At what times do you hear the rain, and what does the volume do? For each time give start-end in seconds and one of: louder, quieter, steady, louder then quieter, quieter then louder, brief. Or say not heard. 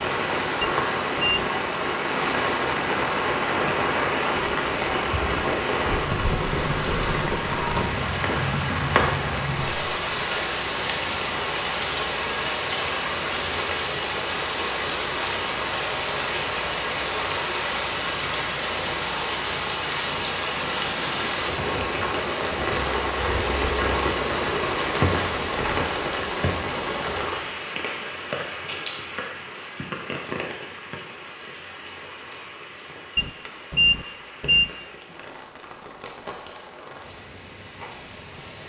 0.0-38.6 quieter.